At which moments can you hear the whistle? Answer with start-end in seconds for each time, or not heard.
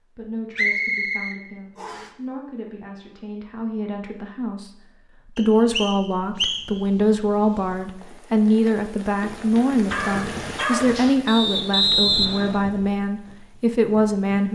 0.6-2.1, 5.3-6.8, 11.2-12.7.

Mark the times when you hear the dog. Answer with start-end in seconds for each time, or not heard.
9.8-11.2.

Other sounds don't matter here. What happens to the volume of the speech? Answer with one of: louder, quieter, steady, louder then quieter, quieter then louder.
louder.